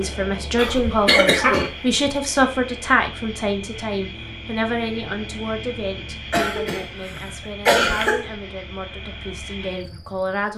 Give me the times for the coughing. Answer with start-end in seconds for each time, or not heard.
0.6-2.1, 6.3-8.2.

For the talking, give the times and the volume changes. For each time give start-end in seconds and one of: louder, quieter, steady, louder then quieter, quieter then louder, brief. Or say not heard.
0.0-10.5 quieter.